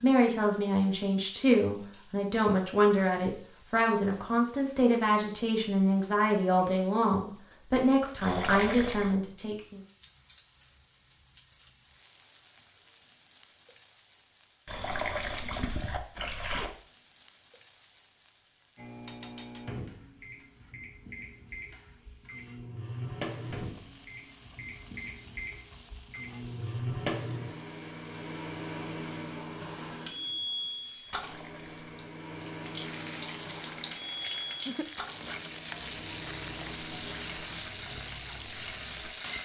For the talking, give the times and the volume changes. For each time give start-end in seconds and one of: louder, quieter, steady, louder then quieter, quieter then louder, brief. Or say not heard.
0.0-9.8 steady.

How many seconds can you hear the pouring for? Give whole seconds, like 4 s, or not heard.
4 s.